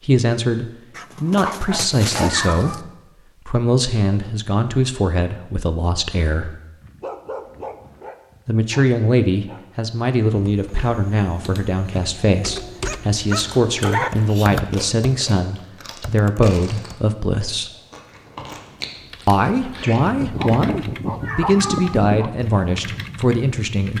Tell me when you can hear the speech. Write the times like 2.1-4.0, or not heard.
0.0-6.6, 8.4-17.7, 19.2-23.9.